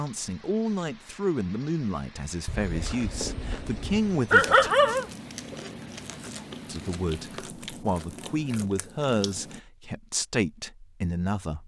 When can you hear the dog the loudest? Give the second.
4 s.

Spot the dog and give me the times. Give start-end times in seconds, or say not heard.
2.5-5.0.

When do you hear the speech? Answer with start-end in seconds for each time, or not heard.
0.0-4.7, 6.7-11.6.